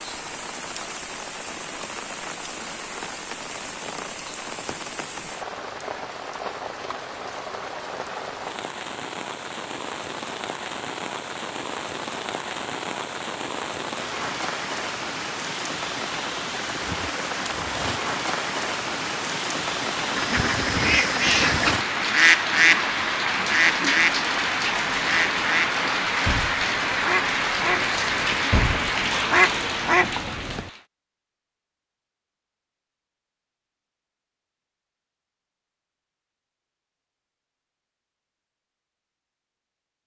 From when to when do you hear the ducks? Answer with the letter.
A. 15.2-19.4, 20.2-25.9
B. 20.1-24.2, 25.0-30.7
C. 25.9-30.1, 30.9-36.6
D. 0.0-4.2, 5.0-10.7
B.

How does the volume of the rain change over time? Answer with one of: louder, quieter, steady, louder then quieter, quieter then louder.
louder.